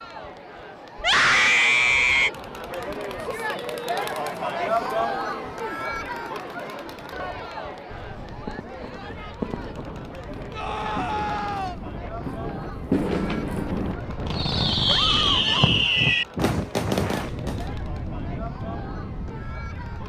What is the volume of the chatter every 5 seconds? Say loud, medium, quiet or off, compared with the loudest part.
loud, loud, medium, medium.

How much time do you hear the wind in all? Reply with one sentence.
You can hear the wind for 12 seconds altogether.